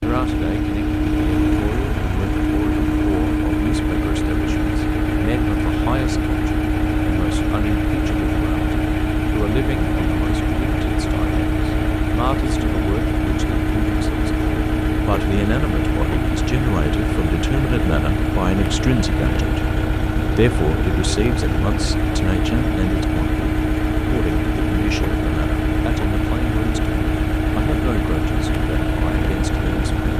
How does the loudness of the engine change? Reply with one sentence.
The volume of the engine stays about the same.